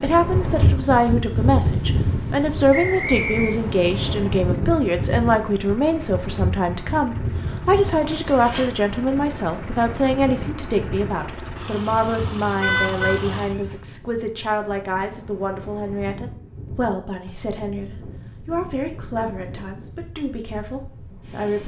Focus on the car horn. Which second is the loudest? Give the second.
13 s.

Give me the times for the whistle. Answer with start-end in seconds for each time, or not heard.
2.7-3.6.